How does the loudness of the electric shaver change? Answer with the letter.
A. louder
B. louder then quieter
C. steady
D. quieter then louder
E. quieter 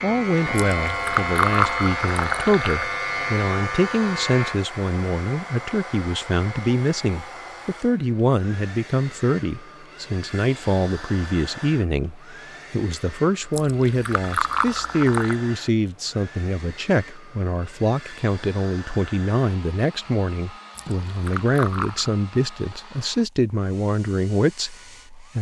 E.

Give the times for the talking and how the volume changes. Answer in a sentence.
The talking can be heard from 0.0 to 25.3 s, at a steady volume.